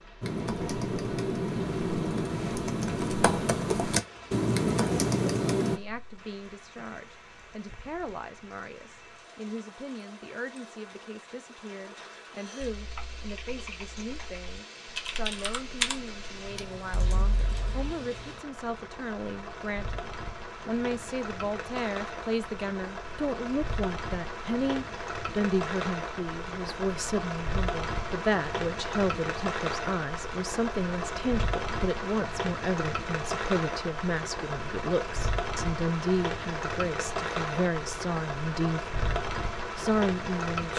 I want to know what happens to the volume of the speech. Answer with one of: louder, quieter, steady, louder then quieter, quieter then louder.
louder.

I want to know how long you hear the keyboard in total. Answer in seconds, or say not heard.
11 s.